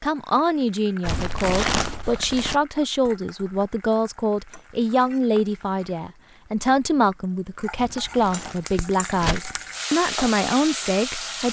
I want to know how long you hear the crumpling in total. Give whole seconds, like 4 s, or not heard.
3 s.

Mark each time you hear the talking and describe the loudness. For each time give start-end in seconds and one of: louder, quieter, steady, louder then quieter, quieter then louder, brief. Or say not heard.
0.0-11.4 steady.